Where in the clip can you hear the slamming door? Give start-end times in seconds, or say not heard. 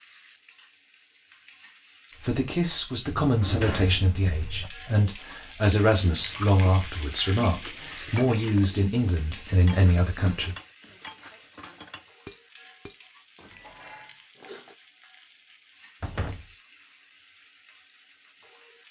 3.2-4.7, 16.0-16.4.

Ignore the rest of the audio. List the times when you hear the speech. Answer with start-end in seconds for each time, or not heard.
2.2-10.6.